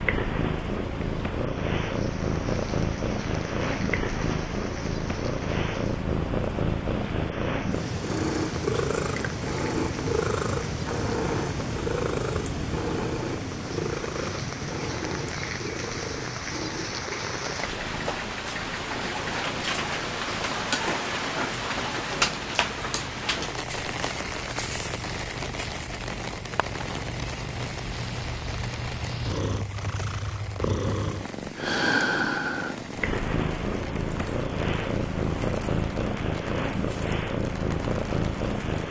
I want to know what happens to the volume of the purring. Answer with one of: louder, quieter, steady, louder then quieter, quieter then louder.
quieter then louder.